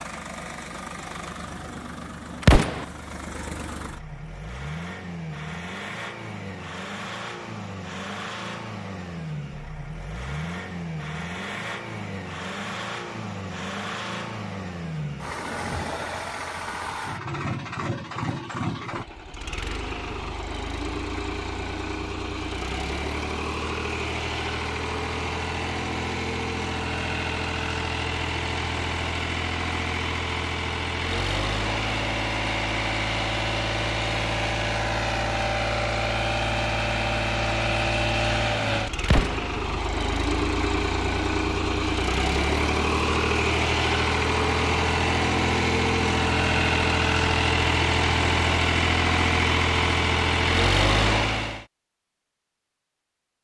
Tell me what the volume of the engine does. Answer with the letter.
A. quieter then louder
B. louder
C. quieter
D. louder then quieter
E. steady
B.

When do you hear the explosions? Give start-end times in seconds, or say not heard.
2.4-2.9, 39.0-39.5.